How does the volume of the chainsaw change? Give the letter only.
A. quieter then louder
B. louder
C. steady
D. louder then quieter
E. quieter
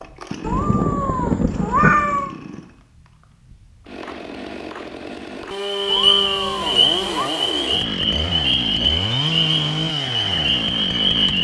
B.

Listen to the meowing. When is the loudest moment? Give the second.
2 s.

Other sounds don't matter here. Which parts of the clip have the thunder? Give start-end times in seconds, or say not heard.
0.4-1.9.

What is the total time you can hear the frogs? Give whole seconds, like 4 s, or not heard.
6 s.